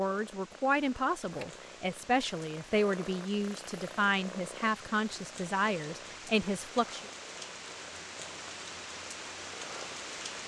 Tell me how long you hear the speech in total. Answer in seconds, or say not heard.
7 s.